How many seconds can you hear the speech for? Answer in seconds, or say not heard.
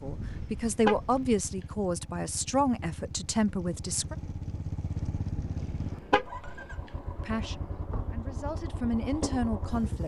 7 s.